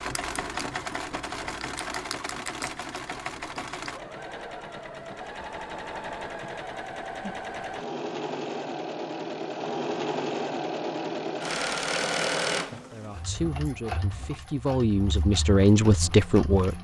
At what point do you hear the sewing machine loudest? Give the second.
12 s.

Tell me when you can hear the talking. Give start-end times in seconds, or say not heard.
12.9-16.7.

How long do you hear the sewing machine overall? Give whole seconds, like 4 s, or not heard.
17 s.